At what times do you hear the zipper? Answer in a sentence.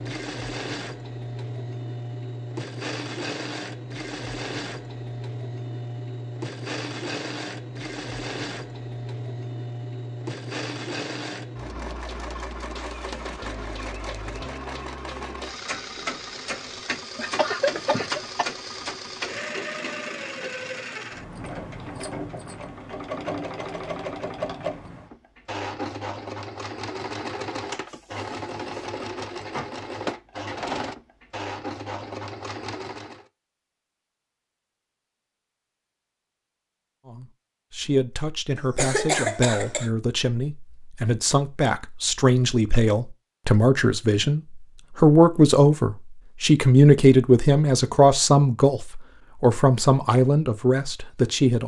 The zipper can't be heard in this clip.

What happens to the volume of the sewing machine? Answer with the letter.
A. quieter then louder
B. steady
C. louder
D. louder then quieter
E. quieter
B.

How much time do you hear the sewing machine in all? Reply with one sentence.
The sewing machine can be heard for 33 seconds in total.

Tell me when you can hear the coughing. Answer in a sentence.
You can hear the coughing from 17.1 to 18.5 s and from 38.5 to 39.9 s.